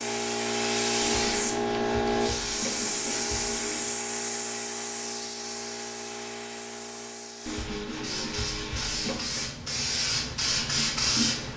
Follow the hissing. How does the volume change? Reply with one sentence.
The loudness of the hissing goes down, then up.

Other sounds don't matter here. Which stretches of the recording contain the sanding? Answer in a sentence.
You can hear the sanding from 1.0 to 3.9 s and from 7.5 to 9.3 s.